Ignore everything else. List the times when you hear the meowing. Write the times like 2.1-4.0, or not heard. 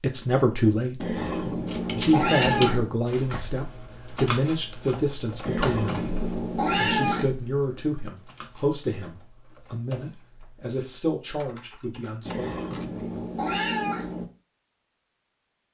1.0-3.0, 5.5-7.2, 12.2-14.2.